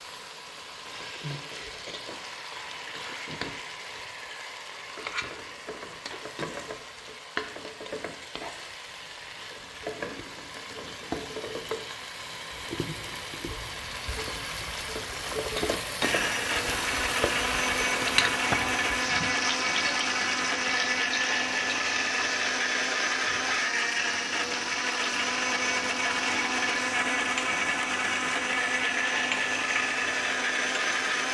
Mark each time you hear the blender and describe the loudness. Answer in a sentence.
The blender can be heard from 16.0 to 31.2 s, at a steady volume.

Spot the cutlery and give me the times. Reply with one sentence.
The cutlery can't be heard in this clip.